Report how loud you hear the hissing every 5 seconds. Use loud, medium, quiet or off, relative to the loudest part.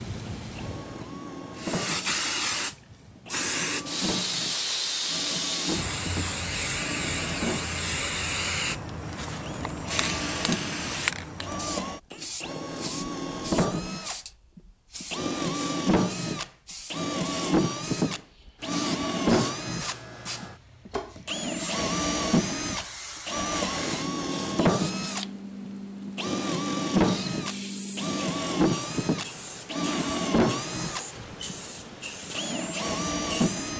loud, loud, loud, medium, medium, medium, medium.